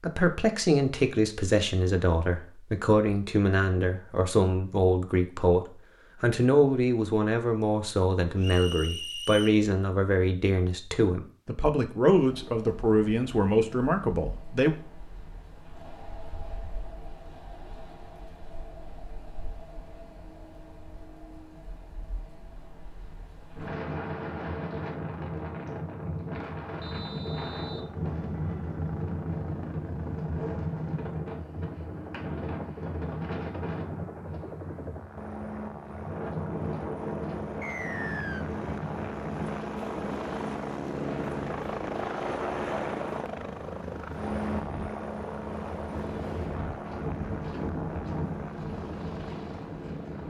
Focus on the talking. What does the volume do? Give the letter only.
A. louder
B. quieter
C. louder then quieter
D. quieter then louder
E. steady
E.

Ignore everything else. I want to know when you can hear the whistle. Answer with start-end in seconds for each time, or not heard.
8.4-9.6, 26.8-27.9, 37.6-38.5.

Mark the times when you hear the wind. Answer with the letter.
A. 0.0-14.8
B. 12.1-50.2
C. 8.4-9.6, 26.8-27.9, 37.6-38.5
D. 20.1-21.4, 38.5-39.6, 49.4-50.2
B.